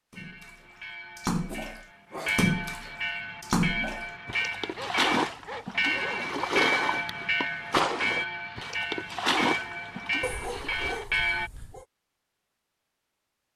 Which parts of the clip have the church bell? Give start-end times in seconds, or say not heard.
0.1-11.5.